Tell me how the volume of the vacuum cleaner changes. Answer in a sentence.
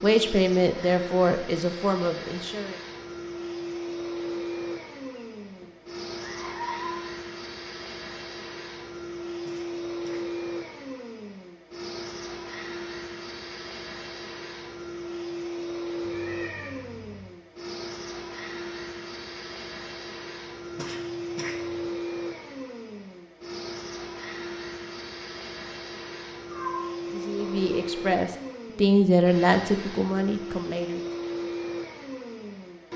The volume of the vacuum cleaner stays about the same.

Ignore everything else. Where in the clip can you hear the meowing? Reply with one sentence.
You can hear the meowing from 5.2 to 7.0 s, from 16.0 to 17.2 s and from 26.5 to 27.9 s.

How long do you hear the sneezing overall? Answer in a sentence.
The sneezing can be heard for 2 seconds in total.